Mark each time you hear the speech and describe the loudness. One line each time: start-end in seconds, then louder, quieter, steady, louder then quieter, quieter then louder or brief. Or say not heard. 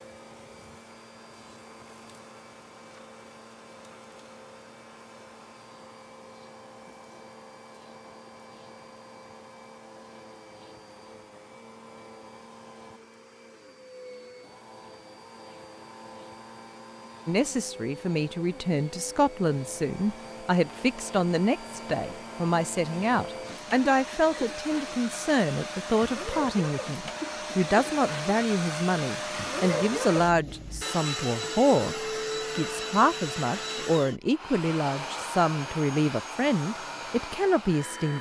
17.2-38.1 steady.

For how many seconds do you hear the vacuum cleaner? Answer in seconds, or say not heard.
38 s.